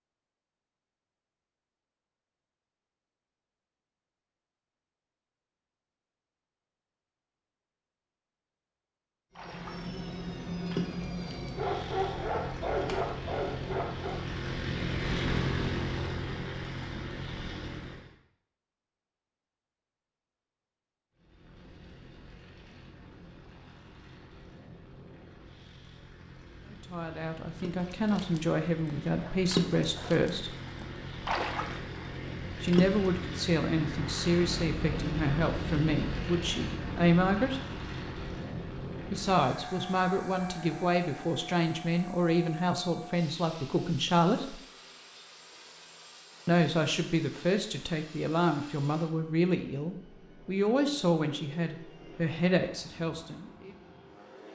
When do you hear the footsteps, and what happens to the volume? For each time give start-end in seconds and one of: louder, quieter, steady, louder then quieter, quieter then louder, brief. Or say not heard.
not heard.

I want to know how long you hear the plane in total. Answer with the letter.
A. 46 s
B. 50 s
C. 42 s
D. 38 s
C.